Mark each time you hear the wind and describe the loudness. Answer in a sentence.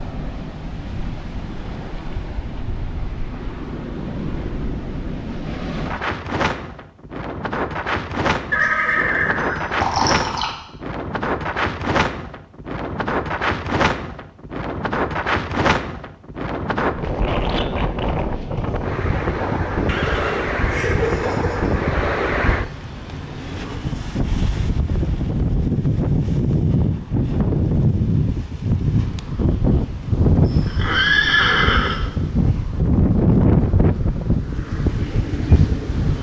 The wind can be heard from 0.0 to 36.1 s, getting louder.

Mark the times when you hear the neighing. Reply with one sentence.
The neighing can be heard from 8.5 to 10.5 s, from 19.9 to 21.8 s and from 30.4 to 32.0 s.